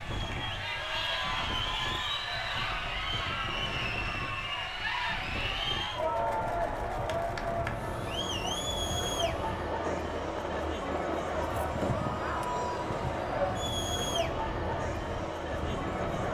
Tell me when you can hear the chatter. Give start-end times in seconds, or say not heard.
0.0-16.2.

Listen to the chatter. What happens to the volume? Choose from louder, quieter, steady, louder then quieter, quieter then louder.
steady.